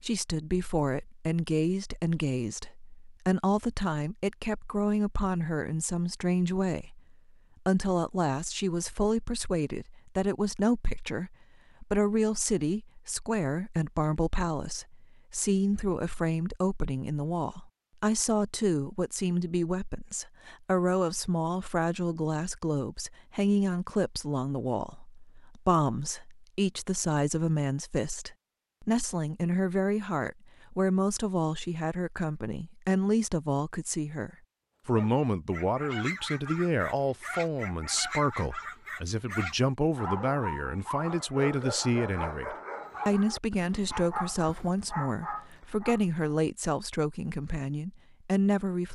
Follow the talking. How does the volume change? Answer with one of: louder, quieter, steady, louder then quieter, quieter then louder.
steady.